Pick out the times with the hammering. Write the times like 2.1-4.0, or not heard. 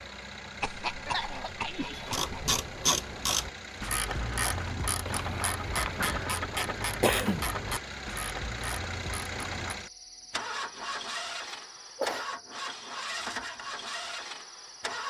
not heard.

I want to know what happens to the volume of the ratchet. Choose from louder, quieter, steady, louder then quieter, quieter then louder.
quieter.